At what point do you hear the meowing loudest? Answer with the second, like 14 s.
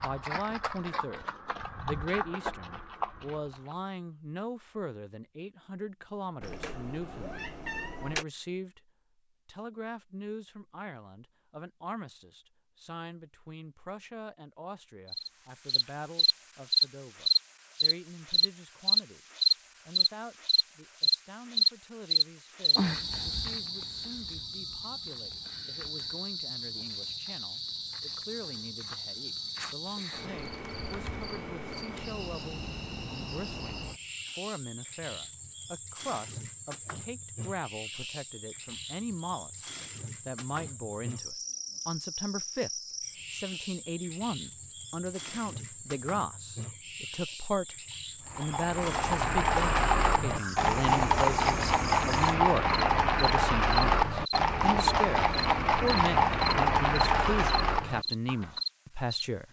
8 s.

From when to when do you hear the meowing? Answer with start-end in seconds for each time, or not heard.
6.4-8.2.